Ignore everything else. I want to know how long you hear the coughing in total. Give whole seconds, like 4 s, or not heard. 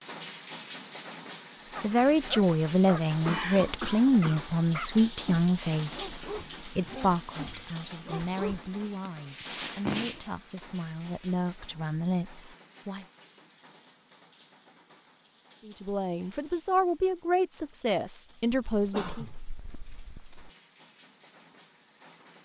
4 s.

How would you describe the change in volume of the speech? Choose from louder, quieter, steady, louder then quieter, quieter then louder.
quieter then louder.